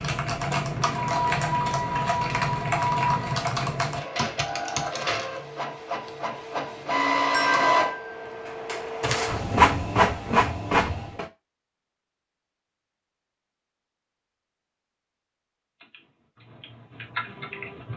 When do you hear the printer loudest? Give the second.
10 s.